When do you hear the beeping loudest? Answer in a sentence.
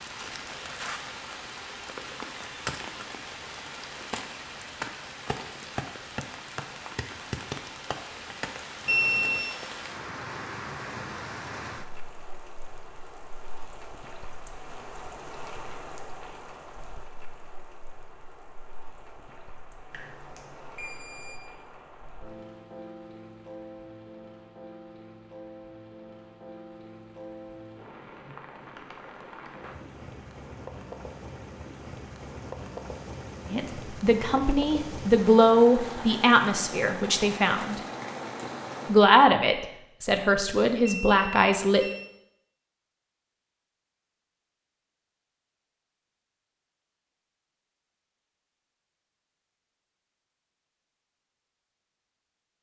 The volume of the beeping peaks at 9 seconds.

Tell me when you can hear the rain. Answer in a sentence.
The rain can be heard from 0.0 to 39.1 s.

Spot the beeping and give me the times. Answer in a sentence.
The beeping can be heard from 8.8 to 9.4 s, from 19.9 to 21.5 s and from 40.8 to 42.0 s.